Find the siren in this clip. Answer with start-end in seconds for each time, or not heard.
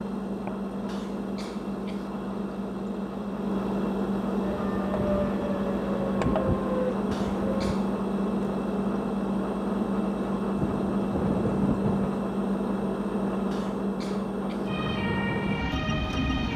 4.4-7.8, 14.7-16.5.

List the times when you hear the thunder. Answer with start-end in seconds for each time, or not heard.
10.6-12.2.